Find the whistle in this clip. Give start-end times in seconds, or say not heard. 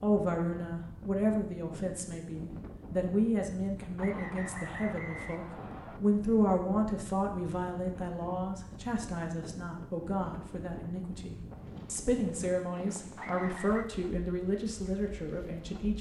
4.0-6.0, 13.2-13.8.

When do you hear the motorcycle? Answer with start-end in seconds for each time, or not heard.
not heard.